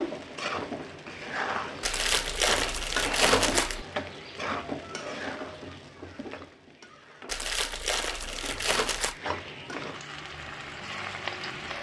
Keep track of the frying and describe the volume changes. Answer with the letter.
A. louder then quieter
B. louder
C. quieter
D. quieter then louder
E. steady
D.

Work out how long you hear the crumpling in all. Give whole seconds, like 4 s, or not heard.
4 s.